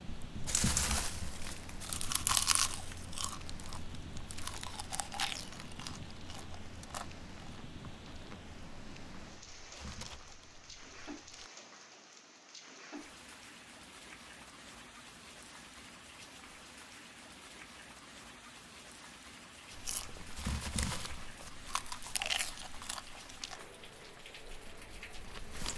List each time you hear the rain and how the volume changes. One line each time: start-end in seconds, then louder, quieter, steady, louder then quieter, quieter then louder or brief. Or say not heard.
0.0-25.7 steady.